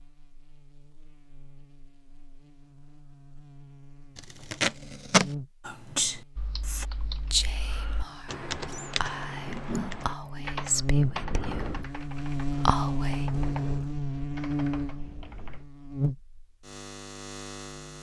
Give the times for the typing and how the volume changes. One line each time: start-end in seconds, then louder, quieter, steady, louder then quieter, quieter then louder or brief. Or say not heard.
6.3-15.7 louder then quieter.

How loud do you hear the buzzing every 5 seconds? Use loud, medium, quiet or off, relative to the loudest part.
quiet, quiet, loud, medium.